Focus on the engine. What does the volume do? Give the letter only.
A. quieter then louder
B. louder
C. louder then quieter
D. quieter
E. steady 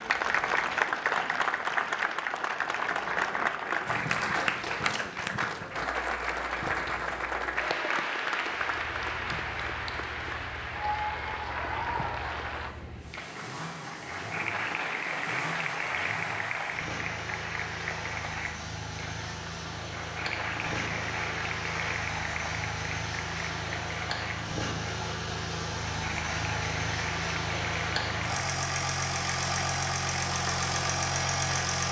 B.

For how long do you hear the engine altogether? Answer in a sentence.
You can hear the engine for 23 seconds altogether.